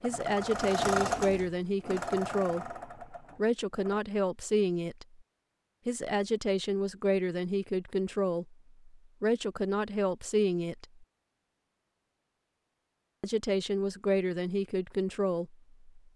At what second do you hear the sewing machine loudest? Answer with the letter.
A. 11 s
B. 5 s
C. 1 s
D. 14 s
C.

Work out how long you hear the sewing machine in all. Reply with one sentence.
The sewing machine can be heard for 4 seconds in total.